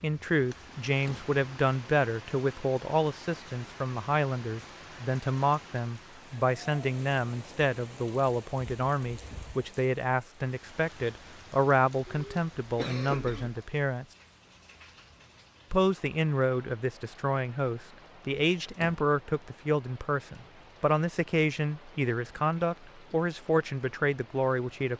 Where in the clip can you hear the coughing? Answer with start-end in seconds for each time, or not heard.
12.1-13.6.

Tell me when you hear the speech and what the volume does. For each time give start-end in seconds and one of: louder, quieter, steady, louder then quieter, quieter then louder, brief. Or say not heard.
0.0-14.1 steady
15.7-24.9 steady.